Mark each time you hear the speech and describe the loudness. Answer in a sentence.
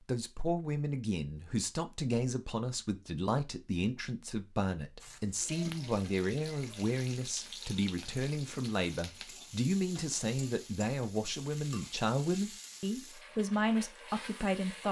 The speech can be heard from 0.0 to 14.8 s, at a steady volume.